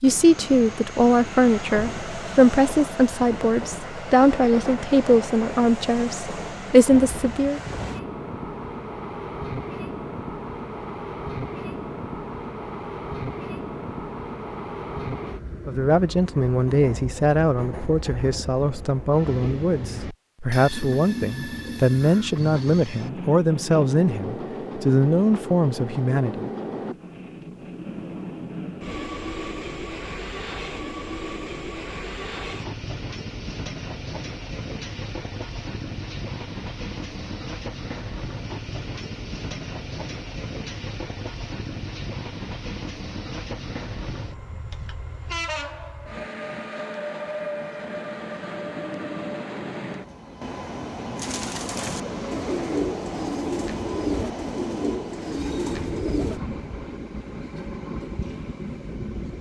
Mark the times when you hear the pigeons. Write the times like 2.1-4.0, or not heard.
51.1-56.4.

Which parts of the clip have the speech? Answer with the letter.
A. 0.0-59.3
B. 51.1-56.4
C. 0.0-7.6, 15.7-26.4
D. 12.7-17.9
C.